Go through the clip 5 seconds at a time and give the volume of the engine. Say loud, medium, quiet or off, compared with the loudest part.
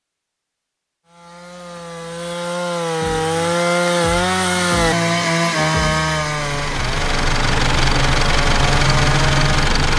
off, loud.